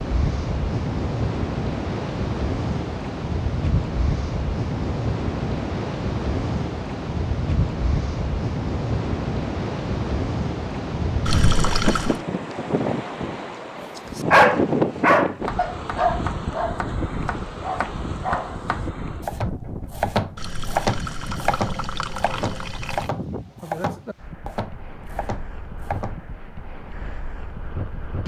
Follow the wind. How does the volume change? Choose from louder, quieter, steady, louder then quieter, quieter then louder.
quieter.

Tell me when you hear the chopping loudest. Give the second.
21 s.